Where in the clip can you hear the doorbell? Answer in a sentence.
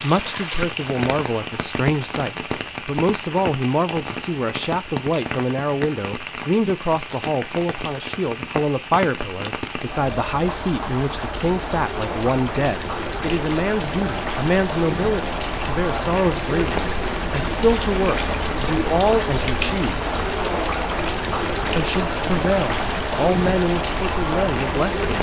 You can't hear the doorbell here.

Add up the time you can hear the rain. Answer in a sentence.
You can hear the rain for 25 seconds altogether.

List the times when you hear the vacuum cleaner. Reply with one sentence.
You can't hear the vacuum cleaner here.